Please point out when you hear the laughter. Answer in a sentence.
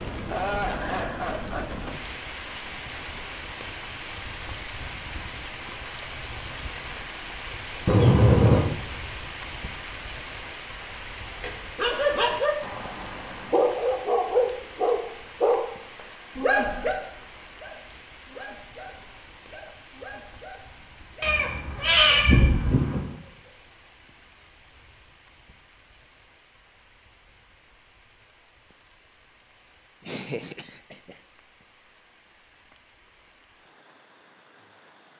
The laughter can be heard from 0.1 to 1.9 s and from 30.1 to 31.1 s.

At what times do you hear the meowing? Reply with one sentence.
The meowing can be heard from 7.8 to 8.6 s and from 21.2 to 23.0 s.